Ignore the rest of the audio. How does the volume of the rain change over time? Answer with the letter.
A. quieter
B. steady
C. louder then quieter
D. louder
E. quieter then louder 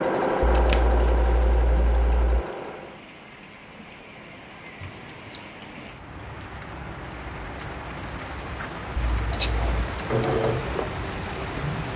D.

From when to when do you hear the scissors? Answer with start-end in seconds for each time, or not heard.
0.4-2.5, 4.8-5.4, 9.1-9.7.